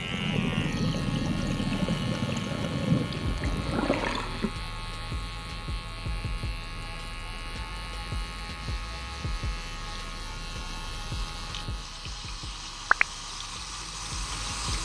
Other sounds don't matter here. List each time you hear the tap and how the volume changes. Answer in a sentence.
The tap can be heard from 0.0 to 4.5 s, at a steady volume; and from 8.6 to 14.7 s, getting louder.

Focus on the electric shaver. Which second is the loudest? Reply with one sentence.
The loudest moment of the electric shaver is at 13 seconds.